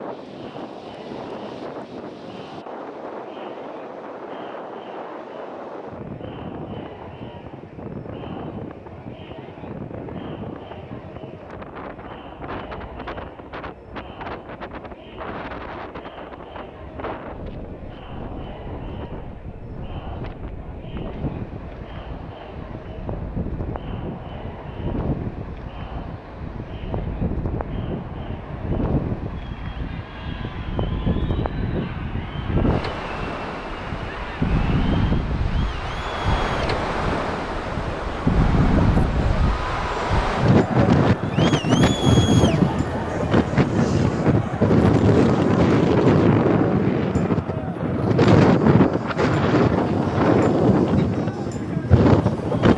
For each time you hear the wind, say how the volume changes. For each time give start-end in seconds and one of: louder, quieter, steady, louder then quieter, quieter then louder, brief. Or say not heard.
0.0-52.7 louder.